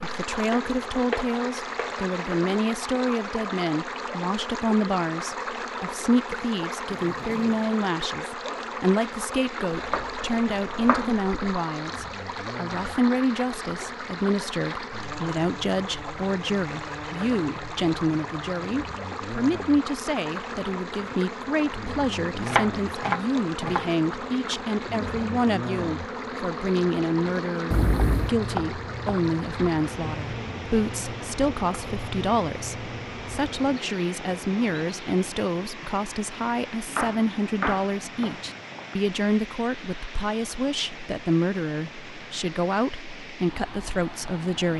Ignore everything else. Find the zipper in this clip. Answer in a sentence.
You can hear the zipper from 7.0 to 7.8 s and from 27.7 to 28.3 s.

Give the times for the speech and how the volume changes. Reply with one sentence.
The speech can be heard from 0.0 to 44.7 s, at a steady volume.